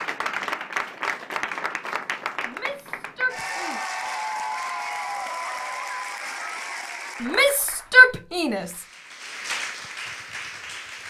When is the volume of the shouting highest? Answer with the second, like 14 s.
8 s.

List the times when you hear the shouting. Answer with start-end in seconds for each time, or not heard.
2.5-3.8, 7.2-8.7.